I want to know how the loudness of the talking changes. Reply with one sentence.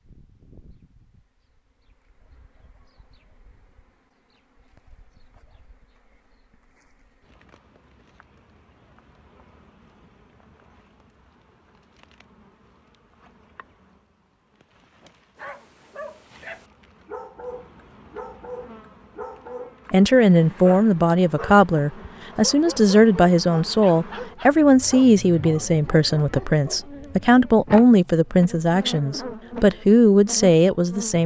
The volume of the talking stays about the same.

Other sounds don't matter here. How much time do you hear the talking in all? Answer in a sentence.
The talking can be heard for 11 seconds in total.